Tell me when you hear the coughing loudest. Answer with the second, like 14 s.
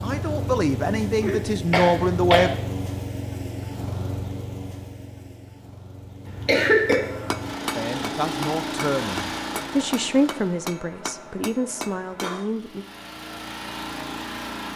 7 s.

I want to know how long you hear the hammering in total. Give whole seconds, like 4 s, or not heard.
6 s.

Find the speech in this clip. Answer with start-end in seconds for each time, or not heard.
0.0-2.5, 7.8-12.8.